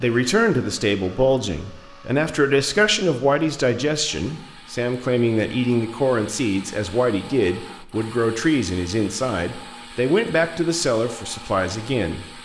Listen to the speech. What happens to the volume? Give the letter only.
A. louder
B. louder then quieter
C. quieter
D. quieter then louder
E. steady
E.